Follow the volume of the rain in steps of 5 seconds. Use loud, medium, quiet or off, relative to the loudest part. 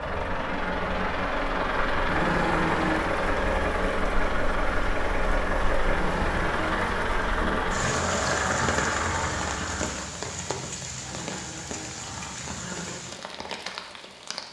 medium, loud, loud.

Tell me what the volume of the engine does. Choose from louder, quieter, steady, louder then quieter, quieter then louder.
steady.